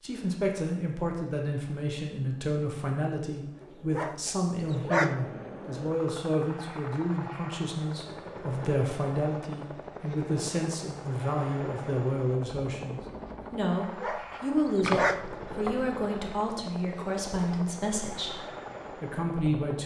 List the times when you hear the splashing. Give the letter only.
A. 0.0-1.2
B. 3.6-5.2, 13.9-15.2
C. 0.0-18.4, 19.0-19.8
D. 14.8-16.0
D.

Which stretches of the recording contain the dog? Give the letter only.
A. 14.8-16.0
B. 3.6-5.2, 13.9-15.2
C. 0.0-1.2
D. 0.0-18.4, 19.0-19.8
B.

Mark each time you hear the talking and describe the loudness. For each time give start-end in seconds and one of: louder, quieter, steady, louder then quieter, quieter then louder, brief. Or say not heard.
0.0-18.4 steady
19.0-19.8 brief.